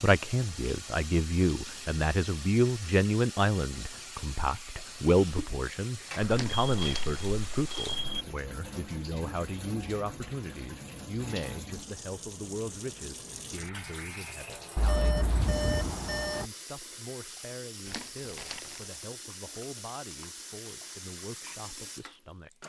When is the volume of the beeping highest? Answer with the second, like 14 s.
16 s.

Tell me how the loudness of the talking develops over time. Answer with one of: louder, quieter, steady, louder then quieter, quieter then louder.
quieter.